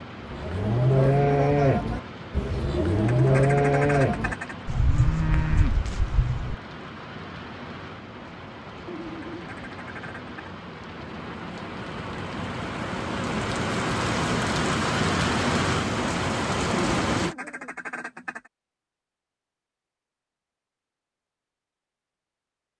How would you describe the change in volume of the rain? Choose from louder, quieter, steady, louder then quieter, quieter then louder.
louder.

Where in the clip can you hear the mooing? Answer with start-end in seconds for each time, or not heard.
0.2-6.5.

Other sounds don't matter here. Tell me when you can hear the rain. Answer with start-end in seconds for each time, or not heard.
0.0-17.4.